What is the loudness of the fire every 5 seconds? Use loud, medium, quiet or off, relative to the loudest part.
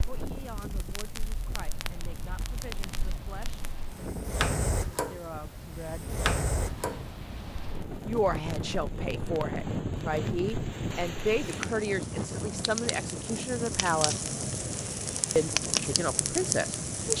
medium, medium, medium, loud.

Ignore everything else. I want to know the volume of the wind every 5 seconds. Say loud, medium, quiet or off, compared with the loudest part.
medium, loud, loud, medium.